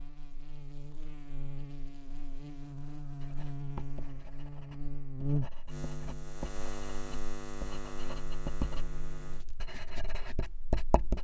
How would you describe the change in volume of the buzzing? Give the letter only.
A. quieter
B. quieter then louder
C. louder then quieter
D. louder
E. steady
C.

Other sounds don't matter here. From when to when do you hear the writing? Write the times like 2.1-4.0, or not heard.
3.1-11.1.